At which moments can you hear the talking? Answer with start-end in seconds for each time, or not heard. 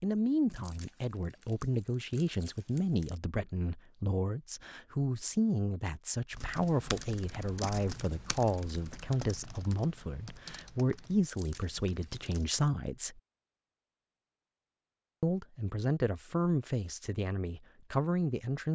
0.0-13.2, 15.2-18.6.